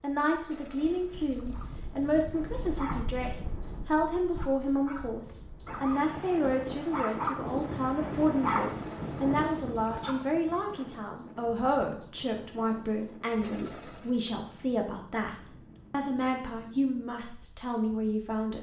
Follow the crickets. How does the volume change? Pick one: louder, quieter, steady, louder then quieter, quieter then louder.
steady.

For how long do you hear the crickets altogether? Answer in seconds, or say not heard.
14 s.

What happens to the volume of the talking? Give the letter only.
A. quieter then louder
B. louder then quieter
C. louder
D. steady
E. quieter
D.